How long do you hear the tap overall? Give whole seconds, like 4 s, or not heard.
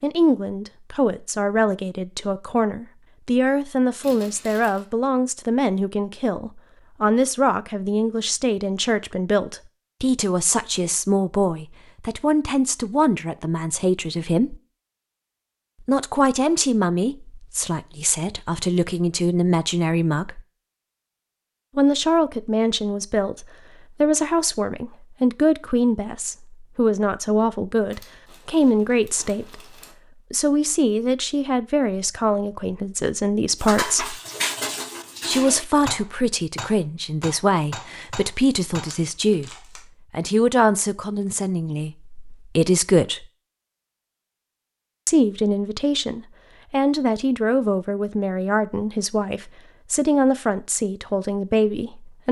not heard.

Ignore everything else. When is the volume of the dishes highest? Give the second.
35 s.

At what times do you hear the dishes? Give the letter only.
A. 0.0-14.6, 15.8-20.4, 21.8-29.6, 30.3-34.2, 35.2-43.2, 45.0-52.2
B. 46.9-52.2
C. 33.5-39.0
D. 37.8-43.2
C.